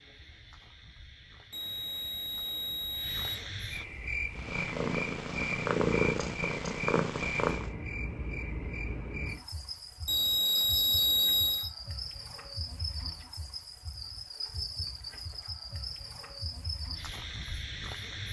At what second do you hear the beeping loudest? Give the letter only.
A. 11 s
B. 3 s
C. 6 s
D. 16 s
A.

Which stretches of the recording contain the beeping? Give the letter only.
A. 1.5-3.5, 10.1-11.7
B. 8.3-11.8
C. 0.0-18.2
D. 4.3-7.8
A.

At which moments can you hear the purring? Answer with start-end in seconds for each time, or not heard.
4.3-7.8.